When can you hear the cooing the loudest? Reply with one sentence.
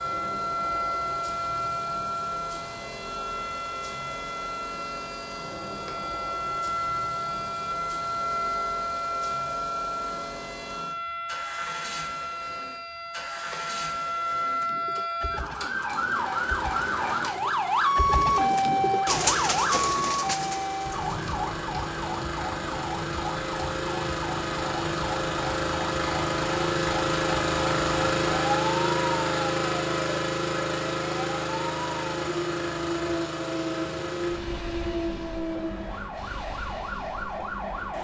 The loudest moment of the cooing is at 19 seconds.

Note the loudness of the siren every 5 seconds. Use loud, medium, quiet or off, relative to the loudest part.
medium, medium, medium, loud, medium, medium, medium, medium.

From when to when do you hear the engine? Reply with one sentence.
You can hear the engine from 0.0 to 37.9 s.